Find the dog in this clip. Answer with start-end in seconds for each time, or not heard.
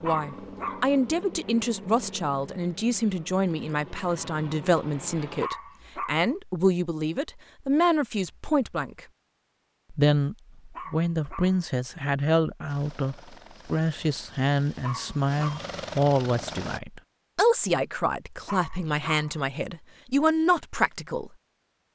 0.0-0.9, 5.4-6.3, 10.7-11.7, 14.8-15.7, 18.4-19.4.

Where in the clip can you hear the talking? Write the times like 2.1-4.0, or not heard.
0.0-9.1, 9.9-21.3.